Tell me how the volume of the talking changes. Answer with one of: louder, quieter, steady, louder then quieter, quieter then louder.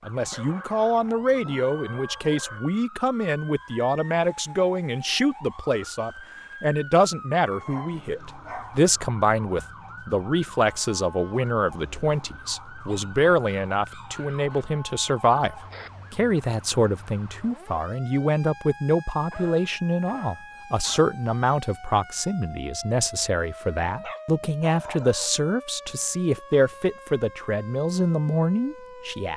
steady.